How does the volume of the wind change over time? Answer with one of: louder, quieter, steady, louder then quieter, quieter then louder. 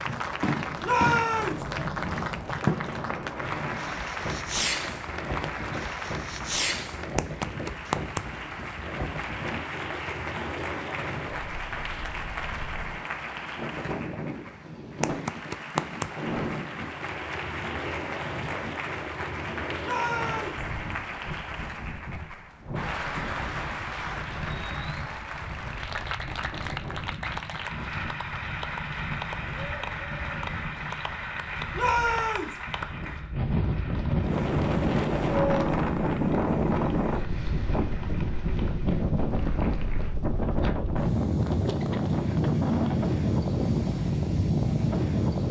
louder.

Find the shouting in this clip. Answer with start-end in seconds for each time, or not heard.
0.8-1.6, 19.8-20.6, 31.7-32.5.